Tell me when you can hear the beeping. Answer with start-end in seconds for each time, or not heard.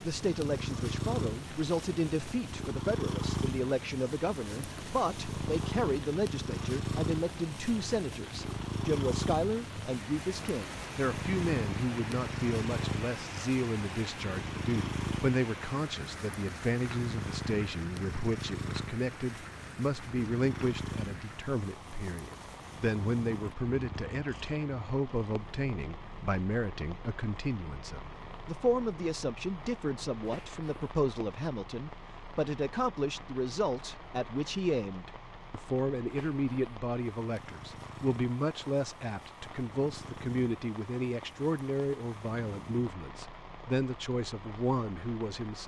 not heard.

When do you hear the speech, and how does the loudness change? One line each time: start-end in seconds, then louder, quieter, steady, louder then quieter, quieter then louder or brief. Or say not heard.
0.0-45.6 steady.